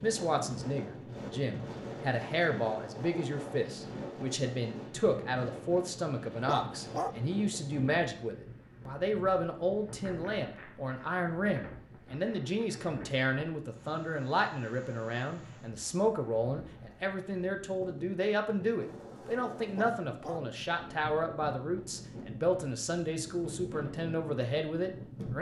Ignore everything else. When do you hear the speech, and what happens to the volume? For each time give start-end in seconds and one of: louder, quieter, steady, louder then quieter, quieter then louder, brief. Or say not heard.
0.0-25.3 steady.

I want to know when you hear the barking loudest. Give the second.
7 s.